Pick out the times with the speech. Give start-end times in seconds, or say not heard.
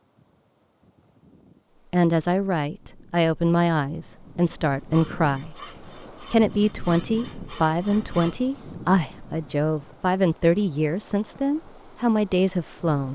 1.9-5.5, 6.3-13.1.